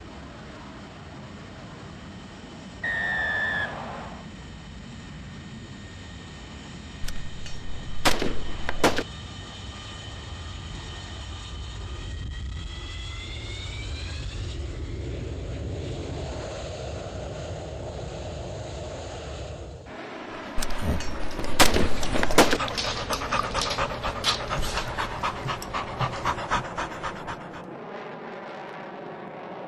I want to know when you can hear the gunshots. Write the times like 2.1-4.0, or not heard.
7.0-9.1, 20.6-22.6.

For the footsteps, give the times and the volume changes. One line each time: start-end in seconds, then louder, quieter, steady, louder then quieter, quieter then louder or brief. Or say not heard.
not heard.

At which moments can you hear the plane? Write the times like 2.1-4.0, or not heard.
0.0-29.6.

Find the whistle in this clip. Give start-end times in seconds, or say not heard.
2.8-4.2.